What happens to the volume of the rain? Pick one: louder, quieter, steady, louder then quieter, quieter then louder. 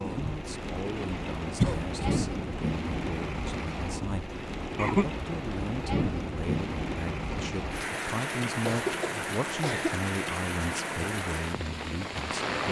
steady.